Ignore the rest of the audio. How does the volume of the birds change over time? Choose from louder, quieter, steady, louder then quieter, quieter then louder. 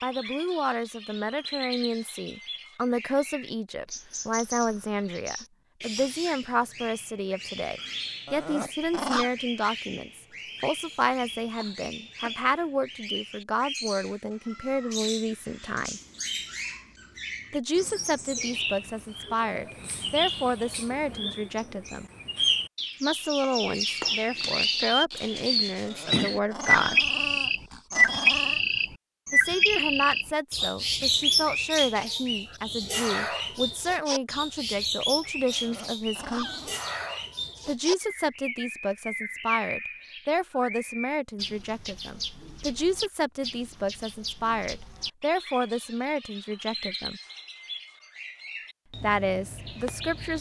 louder then quieter.